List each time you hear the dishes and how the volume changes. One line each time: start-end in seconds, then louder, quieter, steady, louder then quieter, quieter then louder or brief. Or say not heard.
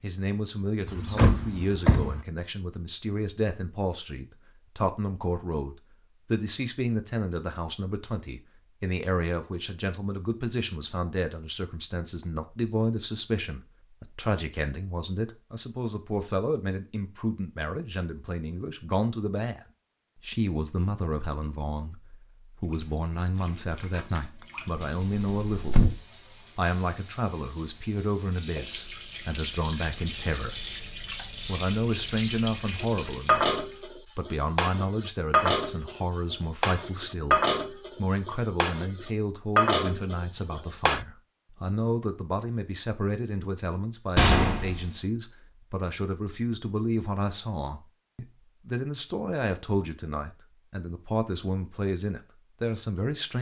32.8-41.0 quieter then louder.